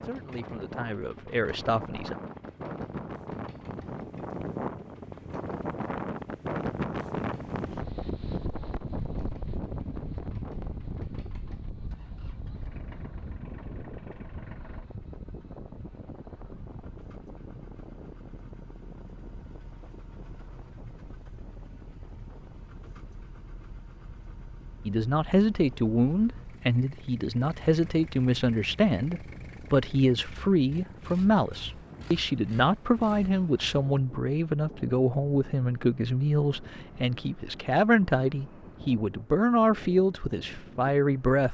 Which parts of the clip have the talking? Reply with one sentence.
You can hear the talking from 0.0 to 2.1 s and from 24.9 to 41.4 s.